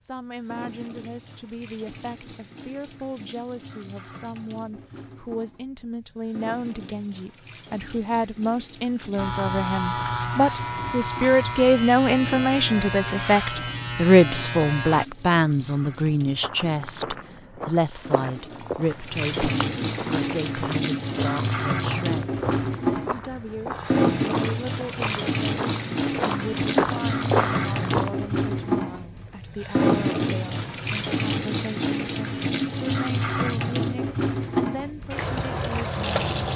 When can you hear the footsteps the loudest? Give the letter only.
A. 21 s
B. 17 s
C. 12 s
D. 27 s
D.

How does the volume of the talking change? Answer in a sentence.
The volume of the talking goes up, then down.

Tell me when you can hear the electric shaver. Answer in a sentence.
You can hear the electric shaver from 9.2 to 15.1 s.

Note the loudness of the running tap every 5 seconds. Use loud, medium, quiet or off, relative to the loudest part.
quiet, quiet, quiet, medium, loud, loud, loud, loud.